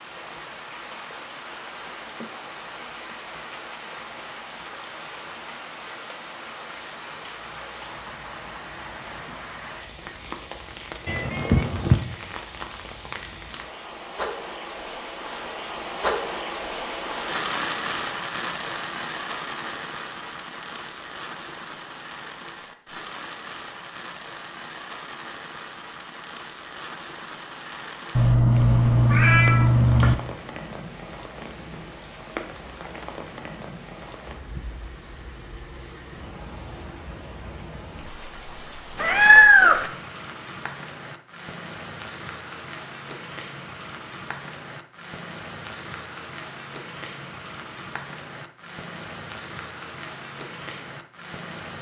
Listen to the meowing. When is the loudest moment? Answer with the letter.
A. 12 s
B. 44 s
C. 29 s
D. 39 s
D.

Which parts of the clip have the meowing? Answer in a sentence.
You can hear the meowing from 11.1 to 11.9 s, from 28.1 to 30.1 s and from 39.0 to 39.9 s.